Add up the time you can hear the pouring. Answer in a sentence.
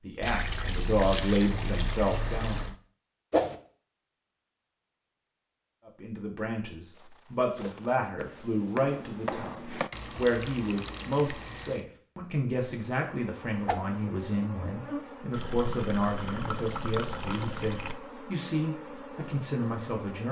You can hear the pouring for 7 seconds altogether.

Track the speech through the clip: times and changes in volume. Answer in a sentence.
You can hear the speech briefly from 0.0 to 2.7 s; and from 5.8 to 20.2 s, at a steady volume.